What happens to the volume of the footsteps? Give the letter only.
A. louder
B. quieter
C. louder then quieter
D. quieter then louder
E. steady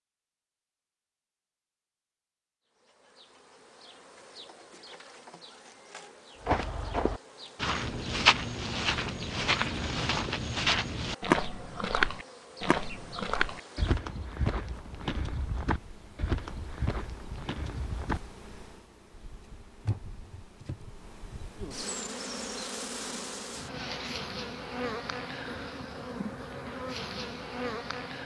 B.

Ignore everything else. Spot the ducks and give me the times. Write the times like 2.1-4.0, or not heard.
not heard.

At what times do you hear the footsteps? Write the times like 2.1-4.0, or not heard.
6.5-18.2.